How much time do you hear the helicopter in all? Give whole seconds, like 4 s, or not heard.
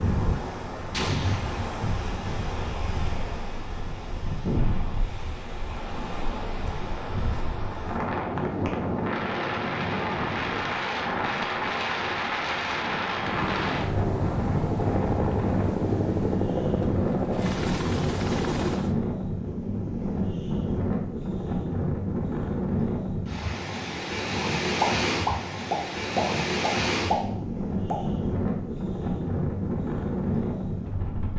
6 s.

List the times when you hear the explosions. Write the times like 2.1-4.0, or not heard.
0.9-1.7, 24.8-27.1.